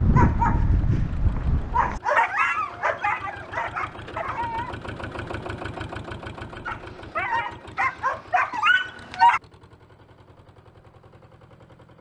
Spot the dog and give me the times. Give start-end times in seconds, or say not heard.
0.0-4.8, 6.7-9.4.